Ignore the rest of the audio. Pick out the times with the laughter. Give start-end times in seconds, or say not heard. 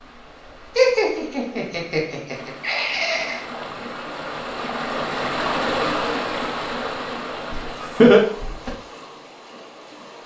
0.8-3.4, 7.5-8.7.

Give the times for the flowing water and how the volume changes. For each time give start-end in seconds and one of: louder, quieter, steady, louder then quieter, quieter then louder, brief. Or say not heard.
0.0-10.2 louder then quieter.